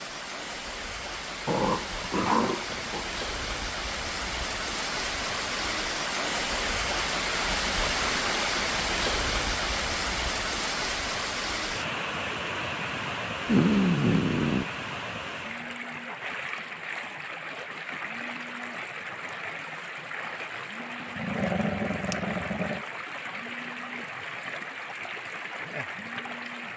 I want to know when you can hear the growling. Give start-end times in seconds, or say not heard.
1.4-3.0, 13.4-14.7, 21.1-22.9.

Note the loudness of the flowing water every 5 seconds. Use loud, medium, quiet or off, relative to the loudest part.
medium, loud, loud, medium, medium, medium.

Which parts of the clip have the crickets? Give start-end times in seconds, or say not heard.
not heard.